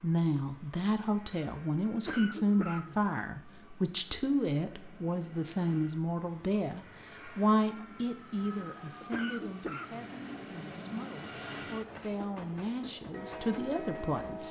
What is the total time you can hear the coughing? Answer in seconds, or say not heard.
2 s.